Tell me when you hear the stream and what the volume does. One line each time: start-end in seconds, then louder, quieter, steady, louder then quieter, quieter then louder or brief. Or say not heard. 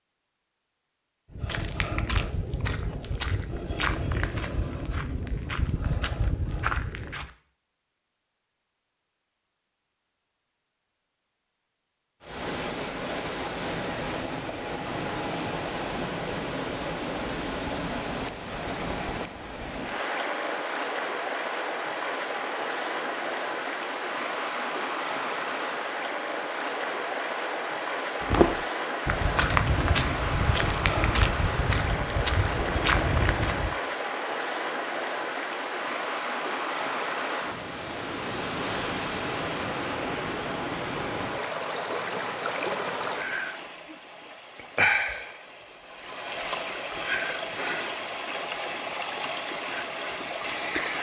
12.2-50.9 steady.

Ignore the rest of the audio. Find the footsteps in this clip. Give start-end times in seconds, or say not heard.
1.3-7.3, 28.2-33.8.